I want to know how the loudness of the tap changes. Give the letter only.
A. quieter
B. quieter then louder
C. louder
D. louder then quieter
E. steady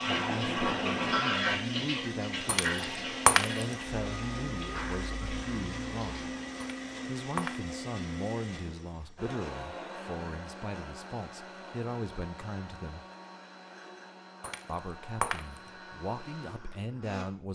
A.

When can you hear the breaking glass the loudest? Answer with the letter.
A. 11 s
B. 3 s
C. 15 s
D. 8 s
B.